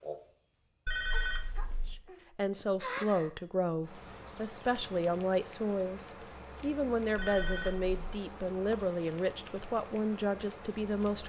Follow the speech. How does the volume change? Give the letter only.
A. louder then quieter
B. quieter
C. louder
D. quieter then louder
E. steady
E.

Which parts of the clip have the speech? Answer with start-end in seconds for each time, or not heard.
1.9-11.2.